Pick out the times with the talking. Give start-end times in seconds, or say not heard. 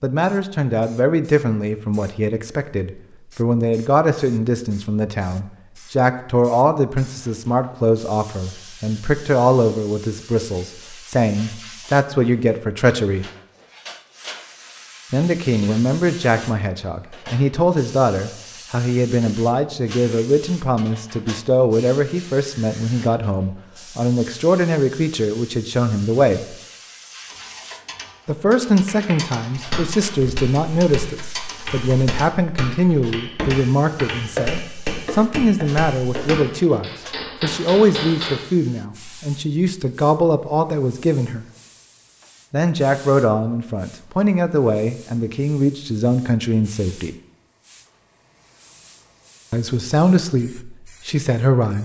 0.0-13.2, 15.1-26.6, 28.2-41.5, 42.5-47.1, 49.5-51.8.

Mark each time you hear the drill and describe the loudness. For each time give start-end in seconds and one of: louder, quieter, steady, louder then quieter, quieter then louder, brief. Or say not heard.
not heard.